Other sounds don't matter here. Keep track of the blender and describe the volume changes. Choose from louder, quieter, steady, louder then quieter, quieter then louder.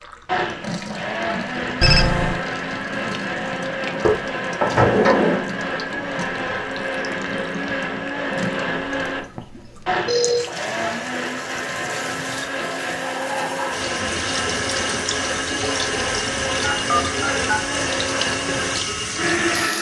steady.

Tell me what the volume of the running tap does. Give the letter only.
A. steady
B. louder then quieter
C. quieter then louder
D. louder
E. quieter
D.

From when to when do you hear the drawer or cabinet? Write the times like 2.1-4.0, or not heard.
4.0-5.5.